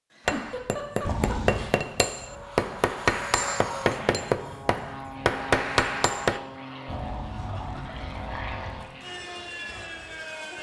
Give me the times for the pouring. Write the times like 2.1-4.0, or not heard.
1.1-1.7, 6.8-8.9.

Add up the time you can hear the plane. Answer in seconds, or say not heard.
8 s.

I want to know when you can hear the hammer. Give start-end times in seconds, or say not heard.
0.2-6.4.